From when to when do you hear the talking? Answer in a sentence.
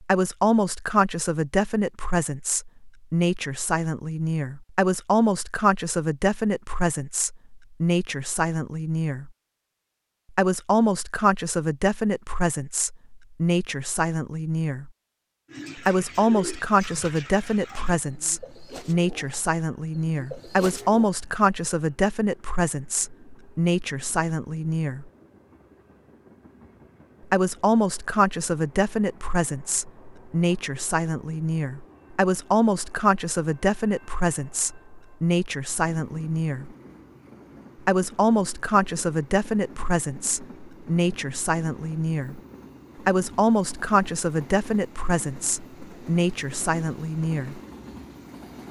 The talking can be heard from 0.0 to 9.3 s, from 10.3 to 14.9 s, from 15.8 to 25.1 s, from 27.3 to 36.8 s, from 37.9 to 42.4 s and from 43.0 to 47.6 s.